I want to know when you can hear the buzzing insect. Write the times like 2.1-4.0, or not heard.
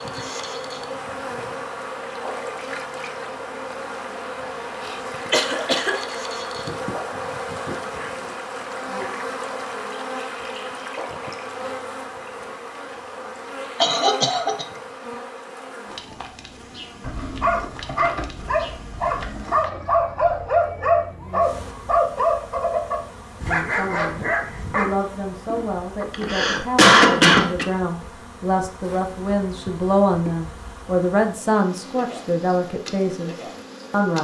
0.0-34.1.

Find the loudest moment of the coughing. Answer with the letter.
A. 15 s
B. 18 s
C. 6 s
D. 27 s
D.